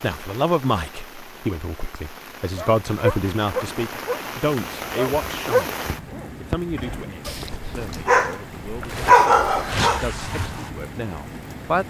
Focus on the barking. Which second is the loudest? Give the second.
9 s.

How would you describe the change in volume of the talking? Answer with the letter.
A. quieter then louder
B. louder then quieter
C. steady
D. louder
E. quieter
A.